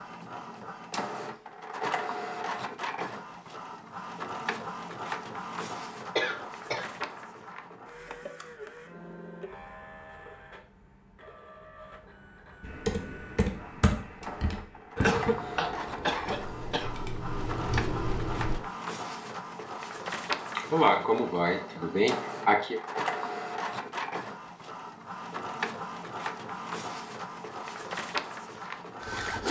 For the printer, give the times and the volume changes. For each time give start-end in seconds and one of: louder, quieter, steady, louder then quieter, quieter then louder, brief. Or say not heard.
0.0-29.4 quieter then louder.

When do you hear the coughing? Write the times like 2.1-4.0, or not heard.
6.2-6.9, 14.9-16.9, 20.6-22.8.